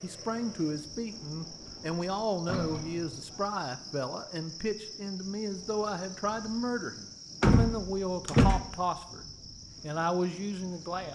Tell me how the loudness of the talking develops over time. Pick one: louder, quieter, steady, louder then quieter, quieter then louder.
steady.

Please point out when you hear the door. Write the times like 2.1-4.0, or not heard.
1.5-3.3, 7.4-8.6.